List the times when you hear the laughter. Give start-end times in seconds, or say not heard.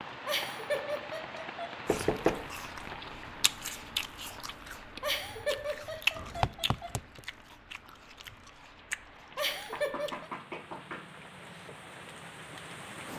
0.2-1.8, 5.0-7.0, 9.3-10.3.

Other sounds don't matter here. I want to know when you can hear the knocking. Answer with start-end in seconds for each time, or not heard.
1.9-2.5, 6.2-7.2, 9.7-11.7.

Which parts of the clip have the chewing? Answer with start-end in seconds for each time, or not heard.
1.9-10.2.